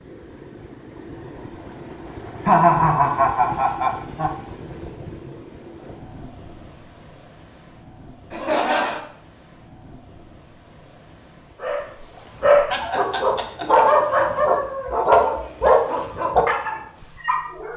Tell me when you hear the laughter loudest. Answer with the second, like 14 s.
3 s.